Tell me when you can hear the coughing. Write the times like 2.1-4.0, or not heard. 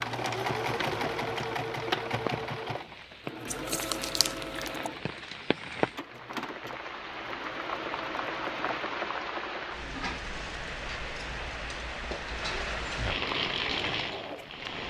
not heard.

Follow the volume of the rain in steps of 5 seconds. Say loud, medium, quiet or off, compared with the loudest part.
medium, loud, loud.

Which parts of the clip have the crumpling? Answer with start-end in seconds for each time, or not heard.
3.5-4.9.